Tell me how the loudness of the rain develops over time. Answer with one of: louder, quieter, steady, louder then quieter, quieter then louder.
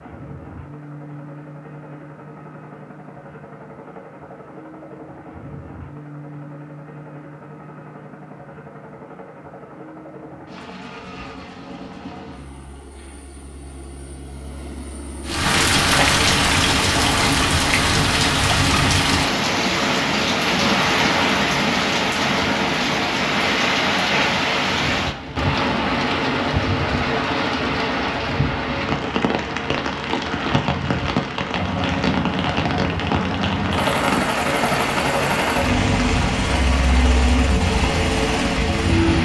quieter.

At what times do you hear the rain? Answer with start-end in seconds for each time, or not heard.
15.2-39.1.